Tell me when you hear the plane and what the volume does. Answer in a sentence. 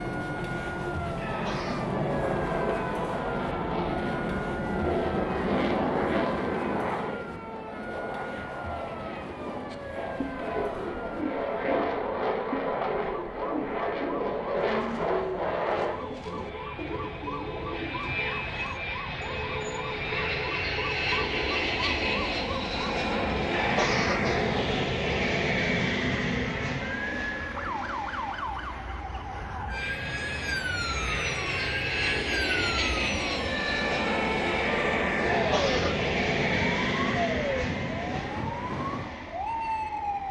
You can hear the plane from 0.0 to 40.2 s, at a steady volume.